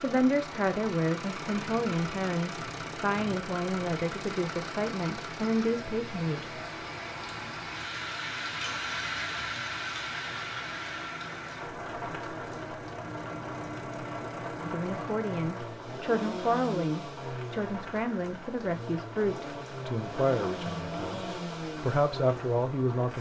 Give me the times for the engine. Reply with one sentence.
The engine can be heard from 0.0 to 23.1 s.